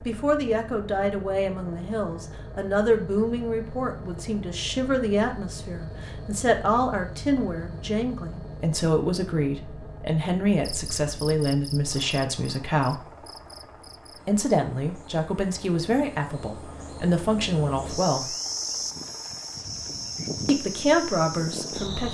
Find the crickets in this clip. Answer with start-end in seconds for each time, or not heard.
10.6-22.1.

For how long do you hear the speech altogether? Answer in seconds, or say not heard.
19 s.